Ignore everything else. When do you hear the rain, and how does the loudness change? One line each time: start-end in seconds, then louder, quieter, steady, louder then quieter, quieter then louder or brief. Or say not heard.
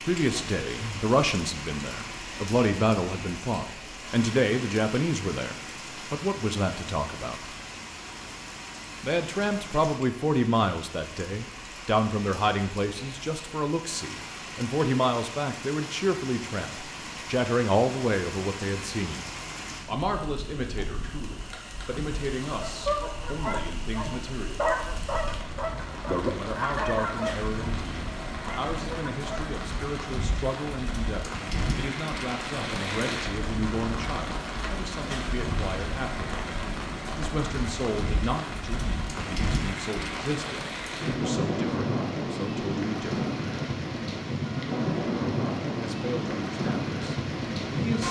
0.0-48.0 louder.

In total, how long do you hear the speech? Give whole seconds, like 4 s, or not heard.
42 s.